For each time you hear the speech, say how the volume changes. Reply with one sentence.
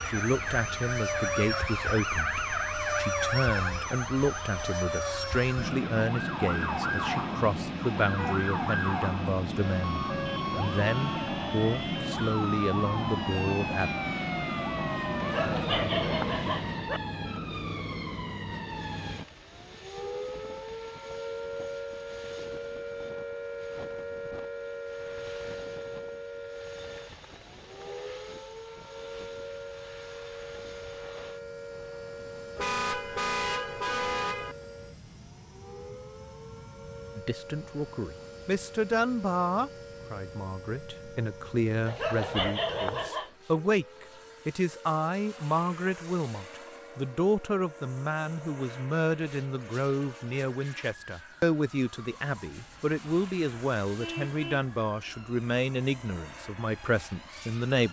The speech can be heard from 0.0 to 13.9 s, at a steady volume; and from 37.1 to 57.8 s, at a steady volume.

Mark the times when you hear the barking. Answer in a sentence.
You can hear the barking from 15.2 to 17.0 s and from 41.9 to 43.3 s.